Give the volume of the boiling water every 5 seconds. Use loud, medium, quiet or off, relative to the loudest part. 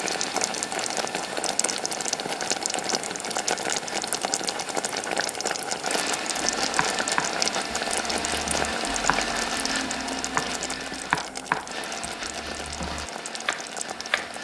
loud, loud, medium.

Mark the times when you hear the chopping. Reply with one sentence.
The chopping can be heard from 6.6 to 14.3 s.